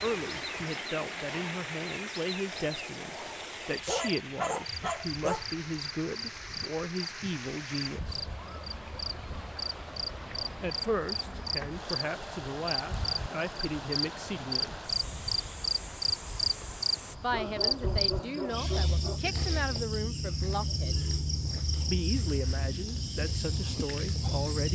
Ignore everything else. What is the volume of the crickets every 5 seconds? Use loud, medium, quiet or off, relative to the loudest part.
medium, medium, loud, loud, loud.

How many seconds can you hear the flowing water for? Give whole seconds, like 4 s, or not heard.
17 s.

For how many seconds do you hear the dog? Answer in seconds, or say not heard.
4 s.